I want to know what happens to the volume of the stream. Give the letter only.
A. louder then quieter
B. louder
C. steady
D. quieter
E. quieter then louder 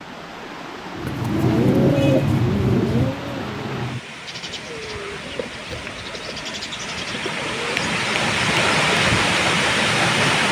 B.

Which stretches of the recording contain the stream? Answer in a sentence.
You can hear the stream from 0.0 to 10.4 s.